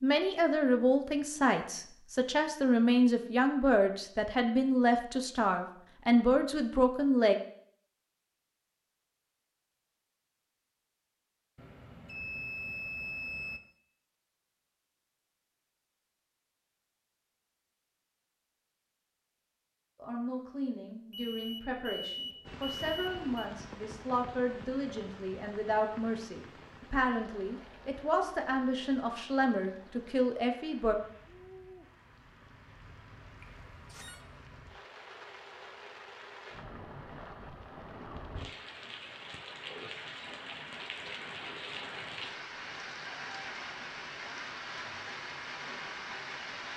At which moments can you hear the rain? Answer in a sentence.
The rain can be heard from 22.4 to 46.7 s.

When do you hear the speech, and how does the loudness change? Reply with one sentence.
You can hear the speech from 0.0 to 7.3 s, at a steady volume; and from 19.9 to 30.9 s, getting louder.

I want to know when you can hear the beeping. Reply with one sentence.
You can hear the beeping from 11.6 to 13.6 s, from 21.1 to 23.4 s and from 33.4 to 34.2 s.